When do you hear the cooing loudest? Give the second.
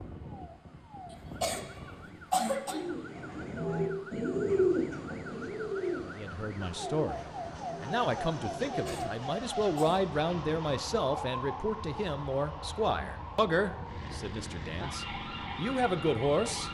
5 s.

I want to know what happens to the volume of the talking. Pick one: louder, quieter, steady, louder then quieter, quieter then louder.
steady.